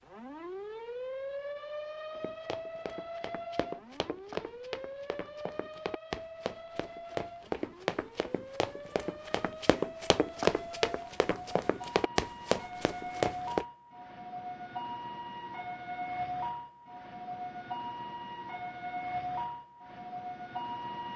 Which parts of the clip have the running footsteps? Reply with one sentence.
You can hear the running footsteps from 2.1 to 13.7 s.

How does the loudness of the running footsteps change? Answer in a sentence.
The volume of the running footsteps goes up.